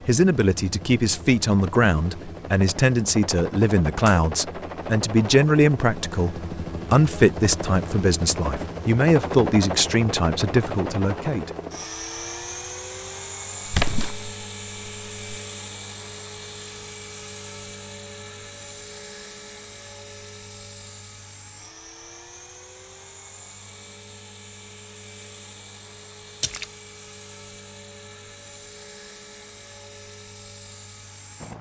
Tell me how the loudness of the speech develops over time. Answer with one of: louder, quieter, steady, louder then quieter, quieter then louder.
steady.